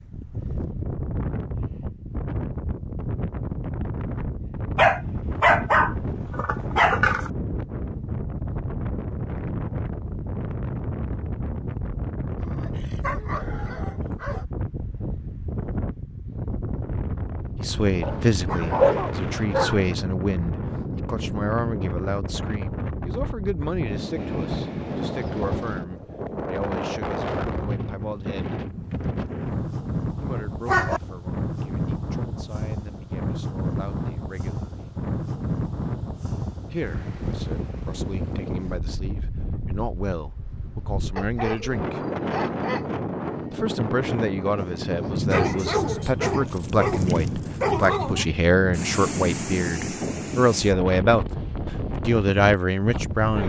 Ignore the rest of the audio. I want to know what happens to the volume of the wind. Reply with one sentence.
The volume of the wind stays about the same.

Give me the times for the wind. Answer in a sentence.
You can hear the wind from 0.0 to 53.4 s.